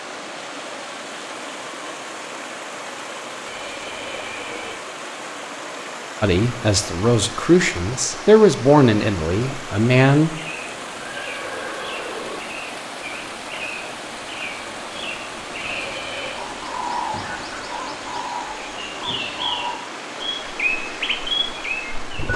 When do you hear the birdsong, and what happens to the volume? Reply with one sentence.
You can hear the birdsong from 10.3 to 22.3 s, getting louder.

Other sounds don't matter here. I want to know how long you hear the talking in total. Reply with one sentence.
You can hear the talking for 4 seconds altogether.